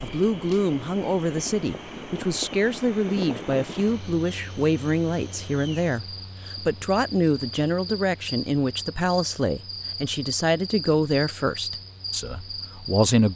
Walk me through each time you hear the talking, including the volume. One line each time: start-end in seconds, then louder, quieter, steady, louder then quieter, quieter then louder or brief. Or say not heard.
0.0-13.3 steady.